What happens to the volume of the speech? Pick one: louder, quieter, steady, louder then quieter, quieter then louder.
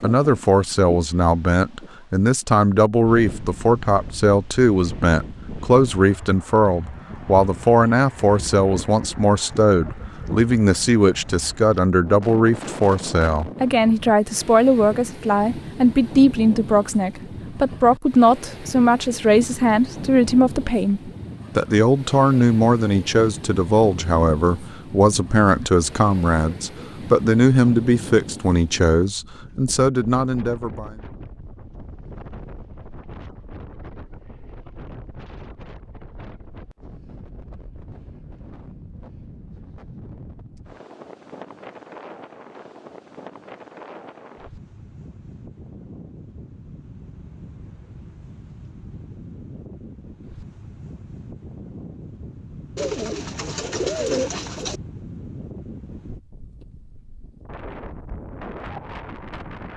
steady.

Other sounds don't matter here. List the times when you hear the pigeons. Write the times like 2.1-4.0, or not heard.
52.8-54.8.